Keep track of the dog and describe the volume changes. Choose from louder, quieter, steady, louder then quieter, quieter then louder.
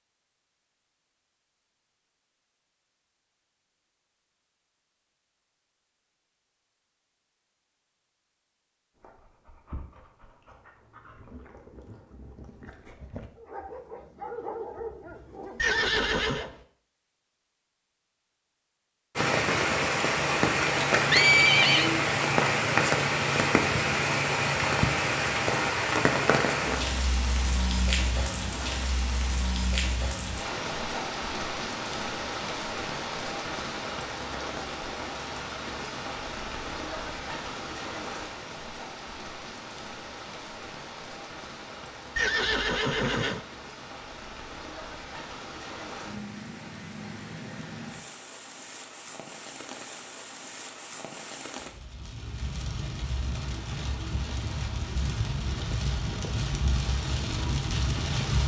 louder.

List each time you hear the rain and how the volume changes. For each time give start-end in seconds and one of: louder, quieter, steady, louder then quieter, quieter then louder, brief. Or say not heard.
19.1-58.4 quieter then louder.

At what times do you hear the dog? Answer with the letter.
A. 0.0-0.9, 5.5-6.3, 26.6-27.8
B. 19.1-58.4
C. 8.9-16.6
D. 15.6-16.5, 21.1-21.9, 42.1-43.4
C.